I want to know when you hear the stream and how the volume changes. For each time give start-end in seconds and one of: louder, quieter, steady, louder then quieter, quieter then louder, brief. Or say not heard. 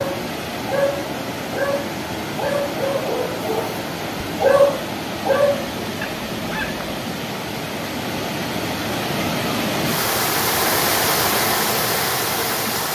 0.0-12.9 louder.